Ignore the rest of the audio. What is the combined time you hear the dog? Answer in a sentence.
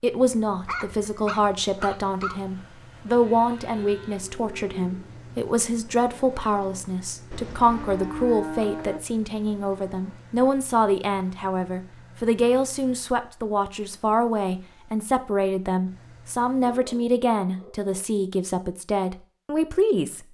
You can hear the dog for 3 seconds altogether.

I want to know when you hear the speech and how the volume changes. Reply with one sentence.
The speech can be heard from 0.0 to 20.2 s, at a steady volume.